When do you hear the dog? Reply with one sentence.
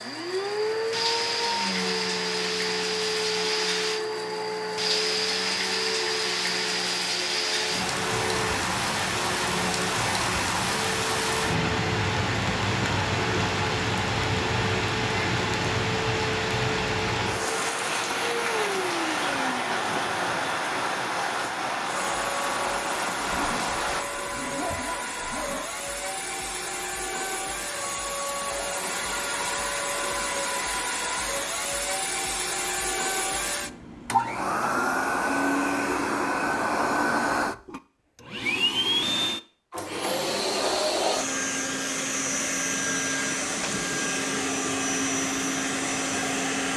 You can hear the dog from 23.2 to 25.7 s.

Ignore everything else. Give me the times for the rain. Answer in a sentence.
You can hear the rain from 0.0 to 24.1 s.